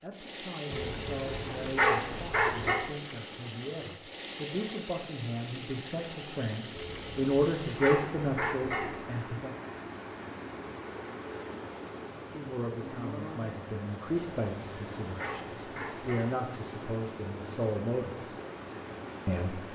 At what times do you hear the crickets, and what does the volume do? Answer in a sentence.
You can't hear the crickets here.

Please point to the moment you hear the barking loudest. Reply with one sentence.
The volume of the barking peaks at 2 seconds.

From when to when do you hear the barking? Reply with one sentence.
The barking can be heard from 0.7 to 2.8 s, from 6.8 to 9.0 s and from 14.3 to 16.2 s.